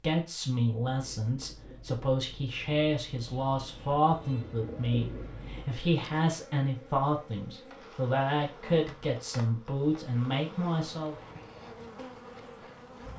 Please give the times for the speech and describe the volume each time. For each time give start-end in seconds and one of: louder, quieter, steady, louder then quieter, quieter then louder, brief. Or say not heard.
0.0-11.2 steady.